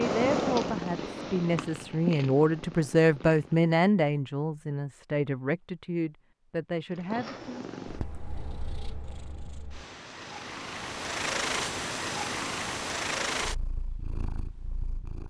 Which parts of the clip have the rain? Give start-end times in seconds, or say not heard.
not heard.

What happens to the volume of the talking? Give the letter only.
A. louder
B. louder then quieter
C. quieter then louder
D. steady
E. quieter
B.